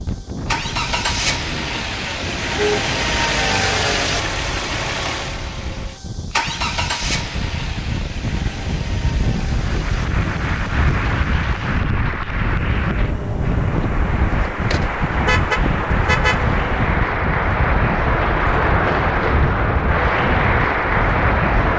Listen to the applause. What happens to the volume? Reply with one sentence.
The volume of the applause goes up.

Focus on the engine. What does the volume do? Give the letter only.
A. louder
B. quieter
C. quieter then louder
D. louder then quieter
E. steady
B.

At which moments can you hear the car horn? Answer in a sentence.
The car horn can be heard from 2.2 to 3.4 s and from 14.3 to 16.4 s.